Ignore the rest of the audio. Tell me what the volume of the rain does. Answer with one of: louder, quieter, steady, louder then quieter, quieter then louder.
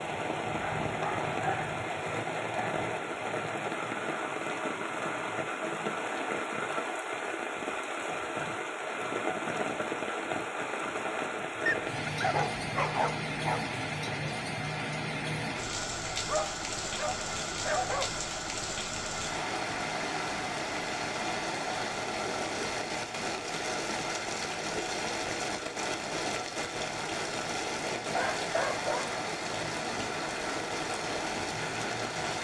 steady.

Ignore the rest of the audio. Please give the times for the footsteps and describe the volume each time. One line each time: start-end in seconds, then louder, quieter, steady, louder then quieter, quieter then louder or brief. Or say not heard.
not heard.